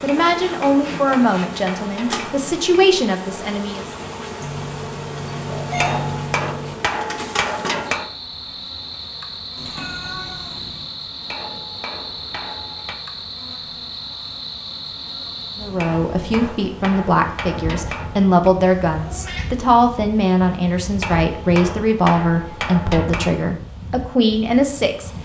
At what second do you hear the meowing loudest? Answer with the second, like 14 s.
6 s.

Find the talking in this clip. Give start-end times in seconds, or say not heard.
0.0-3.8, 15.6-25.1.